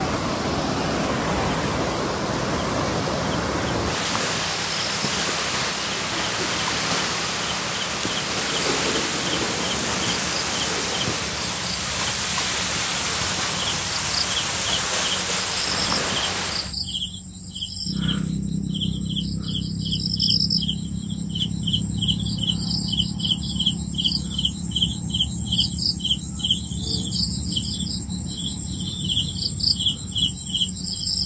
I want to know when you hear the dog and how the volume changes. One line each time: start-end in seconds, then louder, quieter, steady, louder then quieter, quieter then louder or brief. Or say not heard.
not heard.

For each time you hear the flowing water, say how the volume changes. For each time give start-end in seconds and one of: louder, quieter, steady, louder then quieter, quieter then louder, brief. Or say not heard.
0.0-16.8 steady.